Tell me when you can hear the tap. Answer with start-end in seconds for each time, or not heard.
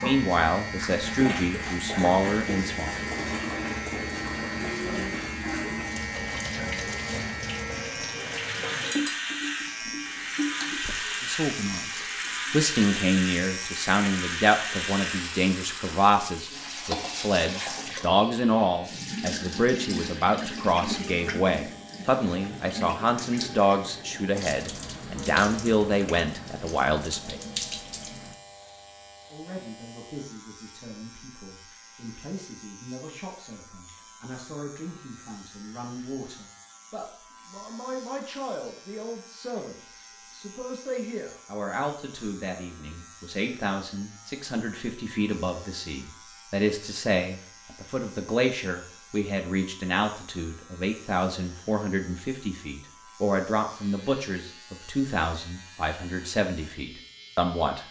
0.0-28.4.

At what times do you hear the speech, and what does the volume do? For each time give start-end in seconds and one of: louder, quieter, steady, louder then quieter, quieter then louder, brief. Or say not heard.
0.0-2.9 brief
11.2-27.4 steady
29.3-57.8 louder.